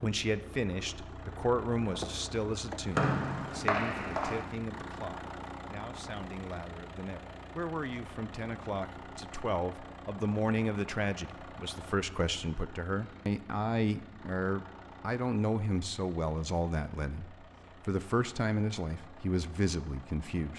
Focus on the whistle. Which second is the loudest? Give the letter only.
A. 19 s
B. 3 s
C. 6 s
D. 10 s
B.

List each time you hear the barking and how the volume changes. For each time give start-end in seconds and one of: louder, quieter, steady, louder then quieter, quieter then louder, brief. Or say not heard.
not heard.